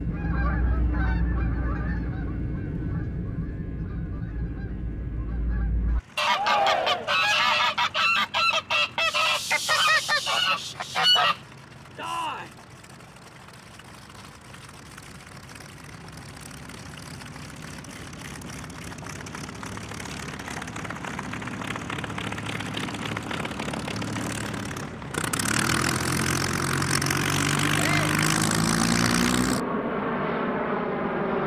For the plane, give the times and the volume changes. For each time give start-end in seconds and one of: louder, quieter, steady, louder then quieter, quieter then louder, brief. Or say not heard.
0.0-31.4 quieter then louder.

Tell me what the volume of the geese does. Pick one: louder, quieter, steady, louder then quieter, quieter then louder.
quieter then louder.